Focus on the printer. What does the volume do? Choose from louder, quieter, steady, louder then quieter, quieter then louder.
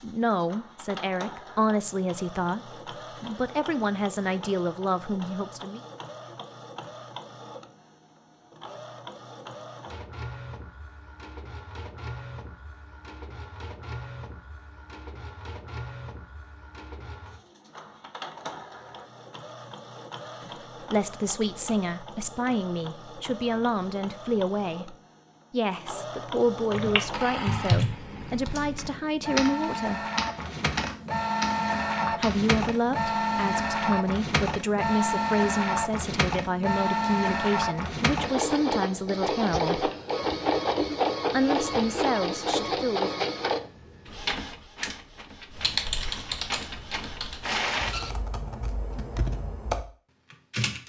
louder.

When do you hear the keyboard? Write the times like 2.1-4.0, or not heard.
26.7-32.5, 45.5-50.8.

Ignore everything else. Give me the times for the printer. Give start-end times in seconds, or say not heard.
0.0-48.2.